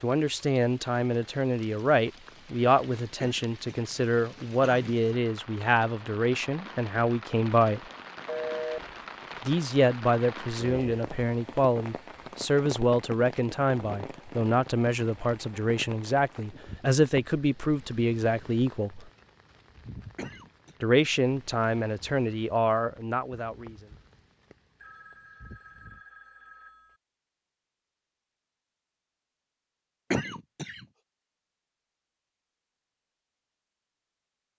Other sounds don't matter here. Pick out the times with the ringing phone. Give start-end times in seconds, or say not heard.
8.2-8.8, 24.8-27.0.